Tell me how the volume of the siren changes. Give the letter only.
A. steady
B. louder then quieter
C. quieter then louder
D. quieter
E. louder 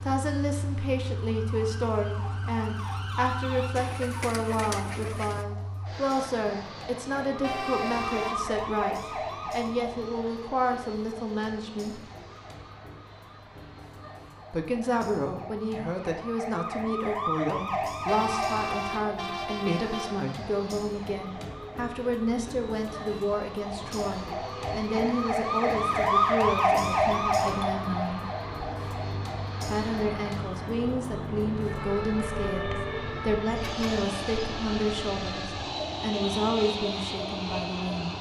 B.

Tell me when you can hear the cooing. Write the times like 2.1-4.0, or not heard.
3.8-5.5.